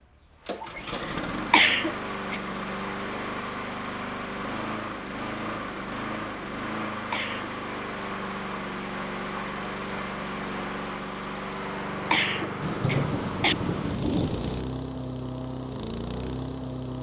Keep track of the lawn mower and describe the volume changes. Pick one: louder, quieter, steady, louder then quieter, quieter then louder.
steady.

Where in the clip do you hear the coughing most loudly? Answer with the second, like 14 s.
2 s.